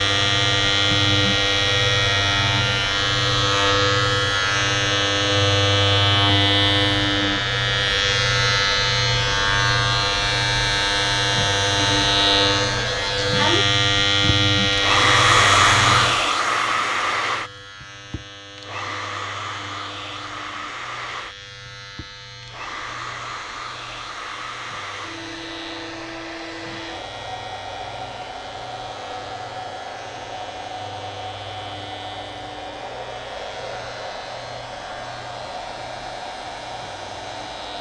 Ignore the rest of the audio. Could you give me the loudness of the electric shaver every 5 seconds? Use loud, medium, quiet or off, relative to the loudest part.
loud, loud, loud, medium, quiet, quiet, quiet, quiet.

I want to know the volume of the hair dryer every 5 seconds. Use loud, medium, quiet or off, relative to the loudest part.
quiet, quiet, medium, loud, quiet, quiet, quiet, quiet.